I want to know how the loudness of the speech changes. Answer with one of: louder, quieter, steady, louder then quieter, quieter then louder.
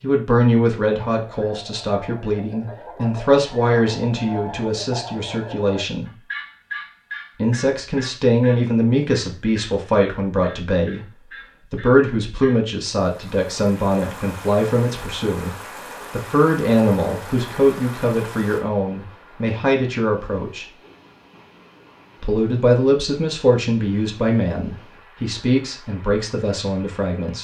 steady.